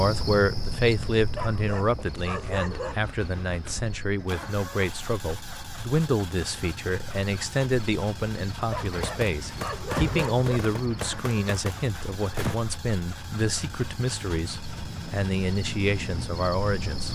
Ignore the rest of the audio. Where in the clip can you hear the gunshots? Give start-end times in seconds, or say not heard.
8.9-12.6.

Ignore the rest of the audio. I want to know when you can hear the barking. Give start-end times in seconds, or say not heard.
1.4-3.0, 8.7-10.6.